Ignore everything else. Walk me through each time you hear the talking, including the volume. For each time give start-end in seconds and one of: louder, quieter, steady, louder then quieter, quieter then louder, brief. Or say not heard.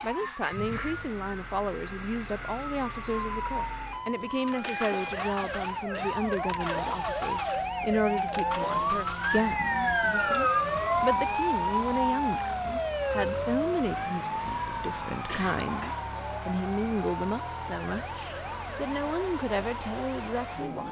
0.0-20.8 steady.